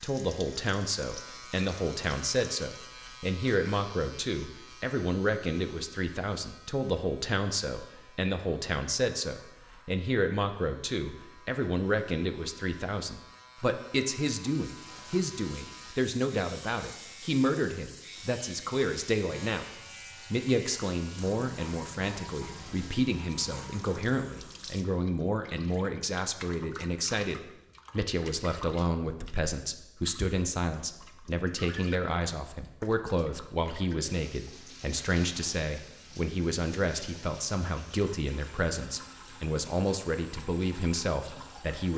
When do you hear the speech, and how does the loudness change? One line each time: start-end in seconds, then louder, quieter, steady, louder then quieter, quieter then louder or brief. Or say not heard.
0.0-19.6 steady
20.3-41.9 steady.